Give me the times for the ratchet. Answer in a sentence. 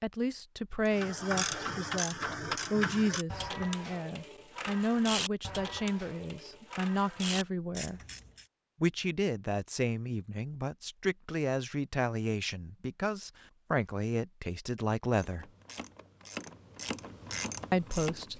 The ratchet can be heard from 0.9 to 8.4 s and from 15.2 to 18.3 s.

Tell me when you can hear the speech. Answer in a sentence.
You can hear the speech from 0.0 to 8.0 s, from 8.8 to 15.4 s and from 17.7 to 18.3 s.